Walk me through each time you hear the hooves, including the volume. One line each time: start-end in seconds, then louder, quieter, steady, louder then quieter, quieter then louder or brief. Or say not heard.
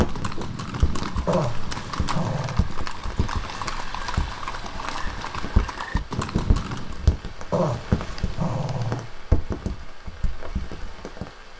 0.0-7.0 steady.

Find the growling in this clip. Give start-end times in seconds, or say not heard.
1.2-2.6, 7.5-9.1.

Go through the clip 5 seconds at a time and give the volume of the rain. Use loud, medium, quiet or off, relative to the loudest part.
loud, loud, medium.